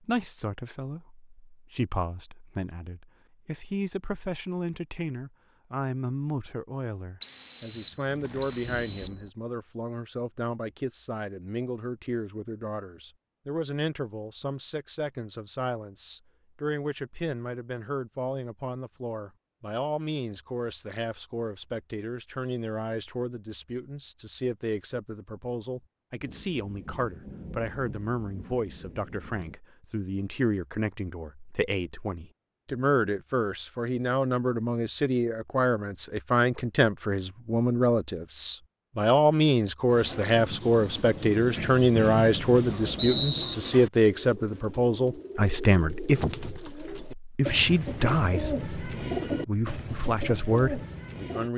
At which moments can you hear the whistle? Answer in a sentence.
You can hear the whistle from 7.2 to 9.2 s and from 42.0 to 43.5 s.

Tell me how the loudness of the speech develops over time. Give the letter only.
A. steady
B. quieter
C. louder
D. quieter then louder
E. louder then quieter
C.